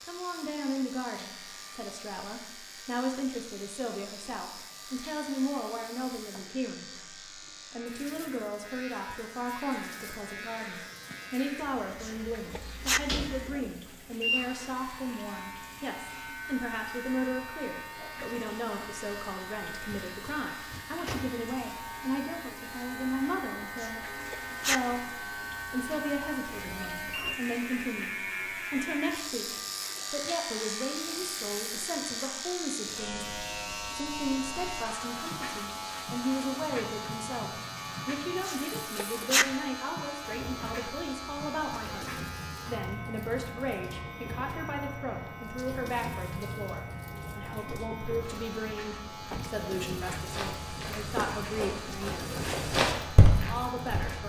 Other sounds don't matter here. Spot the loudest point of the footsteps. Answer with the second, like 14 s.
53 s.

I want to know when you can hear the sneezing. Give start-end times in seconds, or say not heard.
12.0-13.0, 23.8-24.8, 38.5-39.5.